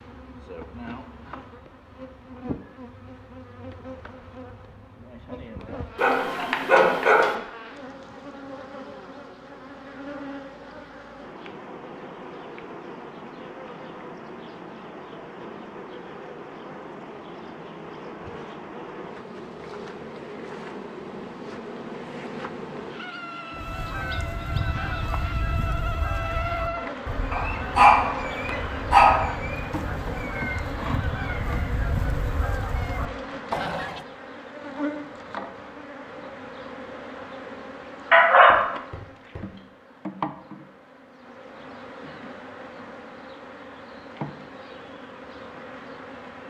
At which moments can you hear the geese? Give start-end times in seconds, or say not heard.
23.5-34.0.